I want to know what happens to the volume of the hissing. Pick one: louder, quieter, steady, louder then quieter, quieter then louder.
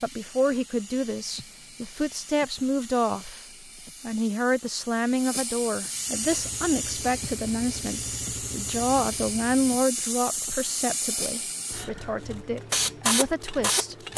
louder.